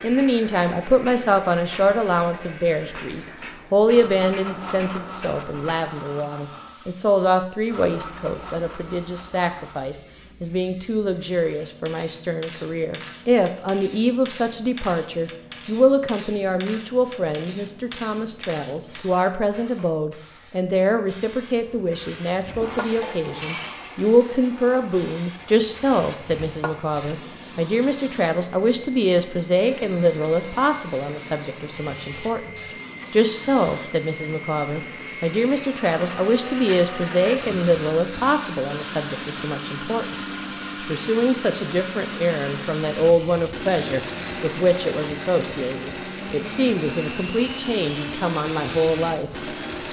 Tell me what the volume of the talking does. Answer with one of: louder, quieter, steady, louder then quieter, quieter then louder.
steady.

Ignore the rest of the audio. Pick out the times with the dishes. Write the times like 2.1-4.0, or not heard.
23.0-24.0.